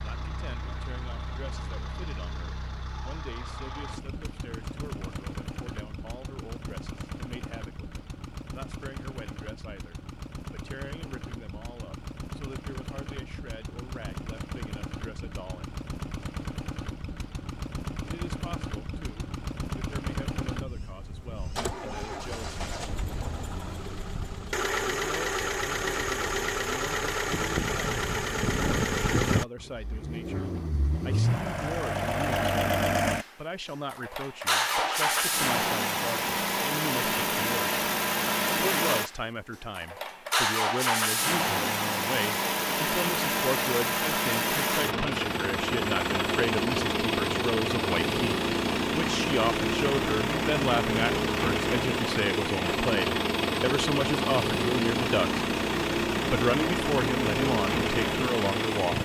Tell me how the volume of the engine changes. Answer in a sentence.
The volume of the engine goes up.